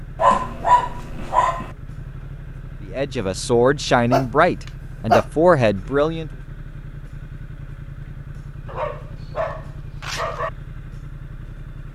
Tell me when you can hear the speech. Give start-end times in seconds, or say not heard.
2.9-6.3.